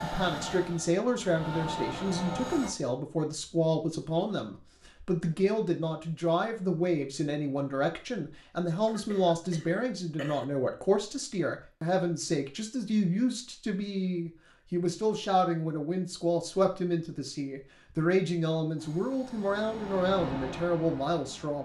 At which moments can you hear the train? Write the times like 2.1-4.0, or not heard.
0.0-2.7, 18.8-21.6.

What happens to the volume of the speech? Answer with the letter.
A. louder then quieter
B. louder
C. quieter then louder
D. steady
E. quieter
D.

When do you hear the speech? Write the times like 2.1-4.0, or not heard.
0.0-21.6.